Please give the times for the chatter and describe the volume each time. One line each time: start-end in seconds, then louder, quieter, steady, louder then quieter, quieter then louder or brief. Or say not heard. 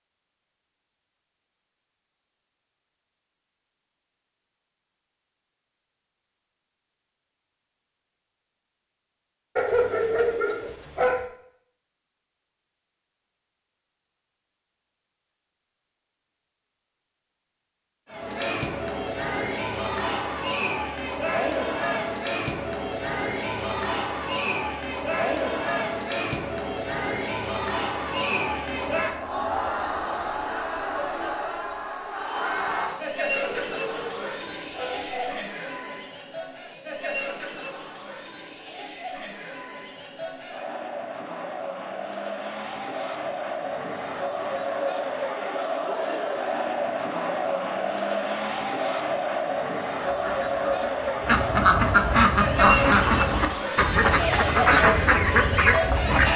18.1-56.3 quieter then louder.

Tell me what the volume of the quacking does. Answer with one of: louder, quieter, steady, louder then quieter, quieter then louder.
louder.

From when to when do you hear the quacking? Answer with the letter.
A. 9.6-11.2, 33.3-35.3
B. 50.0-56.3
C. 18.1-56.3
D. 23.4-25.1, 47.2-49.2
B.